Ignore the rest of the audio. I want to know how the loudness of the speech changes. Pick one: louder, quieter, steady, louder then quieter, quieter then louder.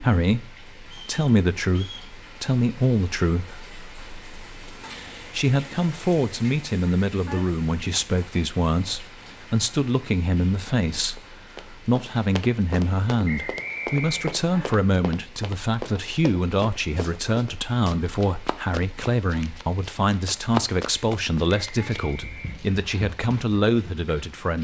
steady.